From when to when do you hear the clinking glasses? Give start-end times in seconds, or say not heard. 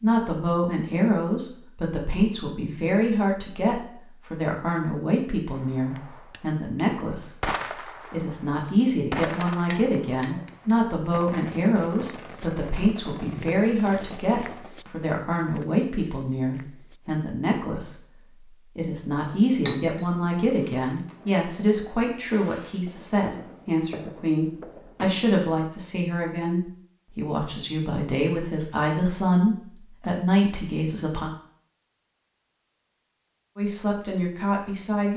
9.7-10.8, 19.6-20.9.